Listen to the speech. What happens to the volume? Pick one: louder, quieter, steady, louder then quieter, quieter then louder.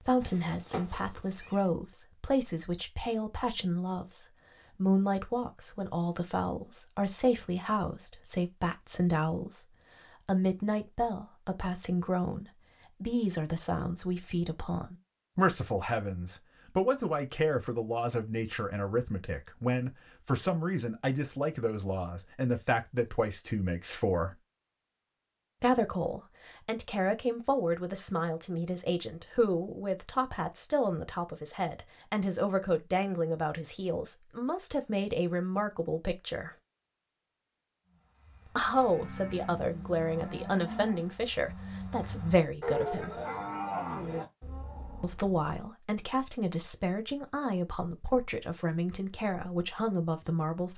steady.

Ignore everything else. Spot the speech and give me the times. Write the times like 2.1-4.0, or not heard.
0.0-24.4, 25.6-36.5, 38.5-43.2, 45.0-50.7.